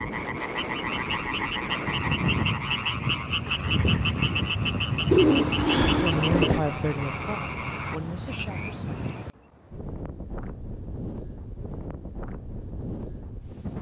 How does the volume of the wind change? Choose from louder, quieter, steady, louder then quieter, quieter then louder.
quieter.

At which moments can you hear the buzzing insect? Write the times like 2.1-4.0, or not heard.
not heard.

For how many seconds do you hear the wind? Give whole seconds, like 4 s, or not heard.
14 s.